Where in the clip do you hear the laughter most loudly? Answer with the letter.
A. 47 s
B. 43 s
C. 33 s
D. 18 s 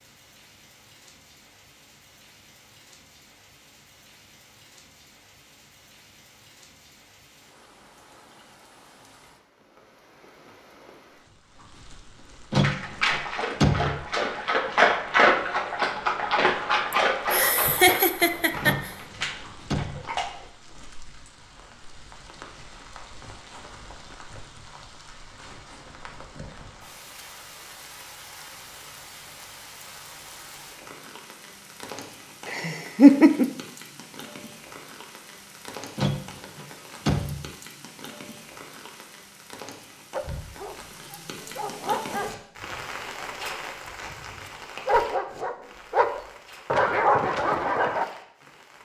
C.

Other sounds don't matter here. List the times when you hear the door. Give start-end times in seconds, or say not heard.
12.5-13.9, 18.6-20.0, 36.0-37.5.